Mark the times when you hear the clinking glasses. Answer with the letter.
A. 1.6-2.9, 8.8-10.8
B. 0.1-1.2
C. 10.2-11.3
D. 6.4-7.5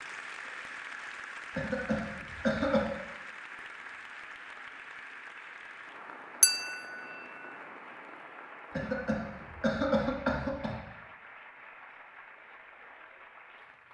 D.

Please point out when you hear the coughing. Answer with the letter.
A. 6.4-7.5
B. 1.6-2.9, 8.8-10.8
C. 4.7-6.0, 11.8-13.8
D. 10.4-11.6
B.